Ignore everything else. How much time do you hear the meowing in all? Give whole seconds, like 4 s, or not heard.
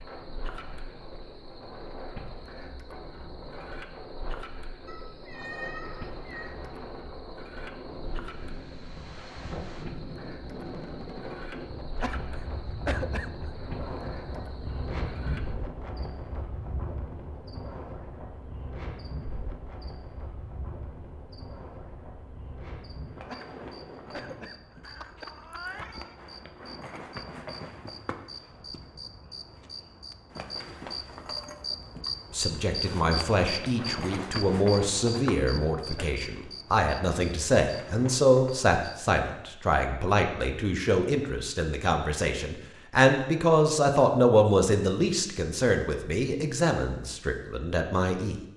3 s.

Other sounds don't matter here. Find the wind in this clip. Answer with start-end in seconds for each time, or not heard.
0.0-24.5.